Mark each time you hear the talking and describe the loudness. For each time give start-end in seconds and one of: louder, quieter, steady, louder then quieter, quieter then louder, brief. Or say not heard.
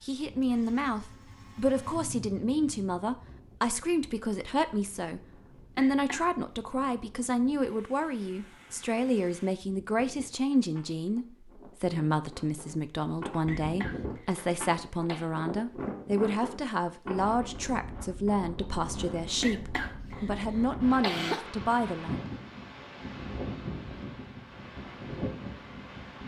0.0-22.2 steady.